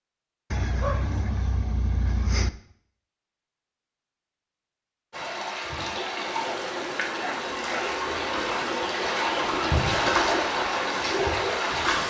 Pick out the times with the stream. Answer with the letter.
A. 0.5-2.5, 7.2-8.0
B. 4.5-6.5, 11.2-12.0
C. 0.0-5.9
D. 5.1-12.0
D.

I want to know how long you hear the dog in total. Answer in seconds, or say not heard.
3 s.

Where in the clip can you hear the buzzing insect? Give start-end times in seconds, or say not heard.
6.1-12.0.